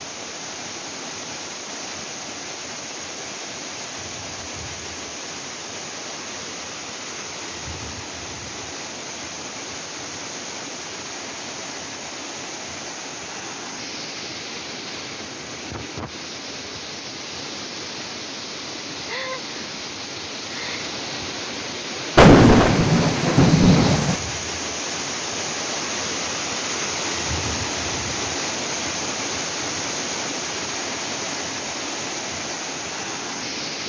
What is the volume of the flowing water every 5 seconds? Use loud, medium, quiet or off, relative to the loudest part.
medium, medium, medium, medium, loud, loud, loud.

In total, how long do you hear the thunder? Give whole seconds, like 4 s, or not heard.
2 s.